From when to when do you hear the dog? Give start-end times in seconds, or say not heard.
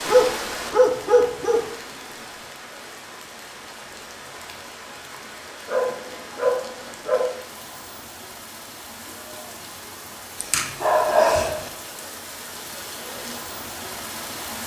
0.1-1.6, 5.7-7.3, 10.4-11.7.